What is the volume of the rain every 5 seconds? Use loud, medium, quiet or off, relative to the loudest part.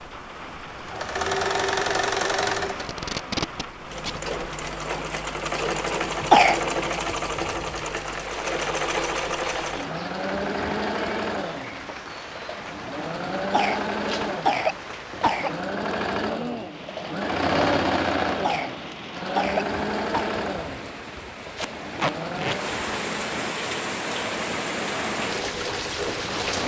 medium, medium, medium, medium, loud, loud.